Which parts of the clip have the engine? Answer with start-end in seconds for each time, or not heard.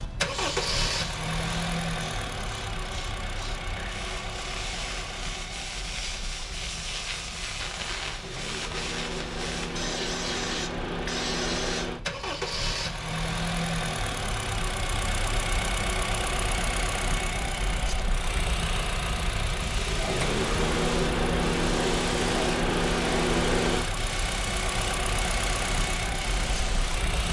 0.0-27.2.